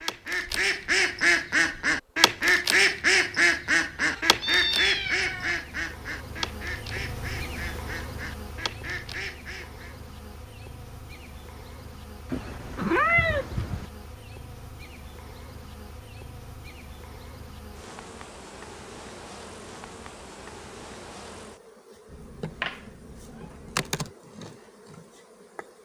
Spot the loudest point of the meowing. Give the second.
13 s.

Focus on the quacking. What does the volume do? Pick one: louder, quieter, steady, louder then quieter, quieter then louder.
quieter.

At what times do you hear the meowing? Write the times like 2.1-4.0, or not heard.
4.0-5.6, 12.3-13.8, 22.1-24.1.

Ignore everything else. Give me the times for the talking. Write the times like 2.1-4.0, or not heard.
not heard.